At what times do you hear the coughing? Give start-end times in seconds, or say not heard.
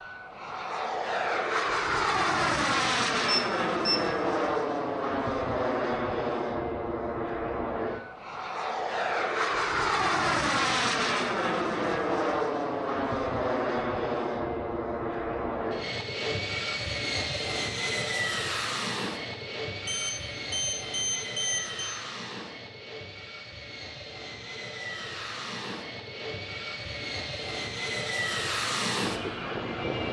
not heard.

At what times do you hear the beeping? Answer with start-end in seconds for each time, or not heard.
3.2-4.0, 19.9-22.0.